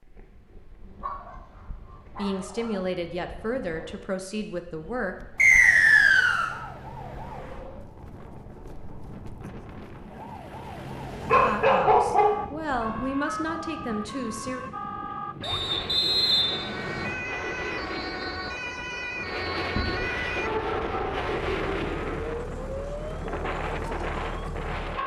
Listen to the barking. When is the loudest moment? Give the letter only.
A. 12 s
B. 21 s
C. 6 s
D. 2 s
A.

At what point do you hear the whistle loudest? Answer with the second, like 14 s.
6 s.